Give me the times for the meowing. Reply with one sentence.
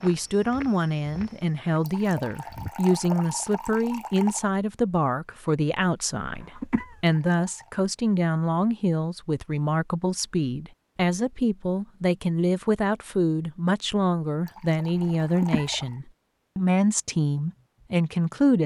You can't hear the meowing here.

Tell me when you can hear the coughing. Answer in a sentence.
The coughing can be heard from 6.3 to 7.0 s and from 14.9 to 15.8 s.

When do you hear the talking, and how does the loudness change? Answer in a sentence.
The talking can be heard from 0.0 to 18.6 s, at a steady volume.